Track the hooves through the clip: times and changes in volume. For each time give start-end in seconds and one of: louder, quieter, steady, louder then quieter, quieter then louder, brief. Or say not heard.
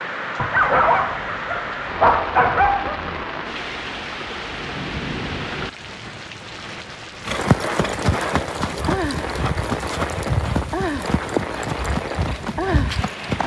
7.2-13.4 steady.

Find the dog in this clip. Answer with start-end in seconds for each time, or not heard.
0.3-3.1.